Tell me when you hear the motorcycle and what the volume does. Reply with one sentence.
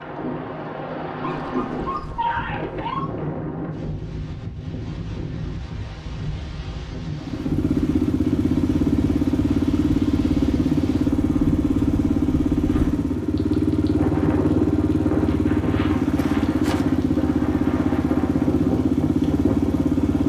The motorcycle can be heard from 7.2 to 20.2 s, at a steady volume.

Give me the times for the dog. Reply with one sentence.
You can hear the dog from 1.2 to 3.1 s.